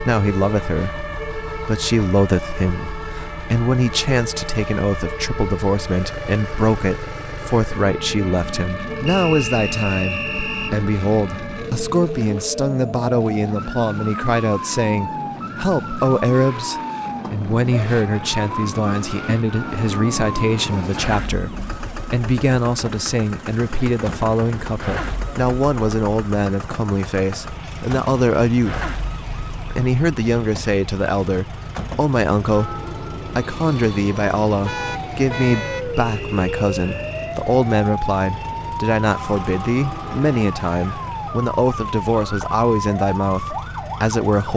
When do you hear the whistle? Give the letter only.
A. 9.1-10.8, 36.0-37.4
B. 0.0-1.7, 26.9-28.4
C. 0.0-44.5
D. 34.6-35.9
A.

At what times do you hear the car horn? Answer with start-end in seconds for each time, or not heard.
34.6-35.9.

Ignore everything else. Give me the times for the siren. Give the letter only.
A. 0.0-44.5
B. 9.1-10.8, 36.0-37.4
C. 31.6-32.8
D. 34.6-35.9
A.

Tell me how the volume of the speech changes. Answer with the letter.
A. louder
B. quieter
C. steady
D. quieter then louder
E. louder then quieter
C.